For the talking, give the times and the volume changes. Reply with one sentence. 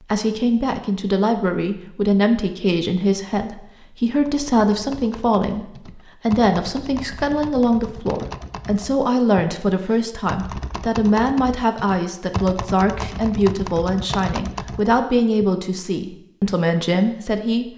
You can hear the talking from 0.1 to 17.6 s, at a steady volume.